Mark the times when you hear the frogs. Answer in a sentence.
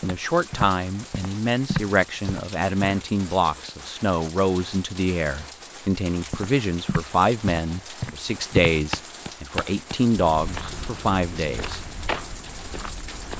You can't hear the frogs here.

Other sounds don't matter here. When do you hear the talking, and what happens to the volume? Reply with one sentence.
You can hear the talking from 0.0 to 11.8 s, at a steady volume.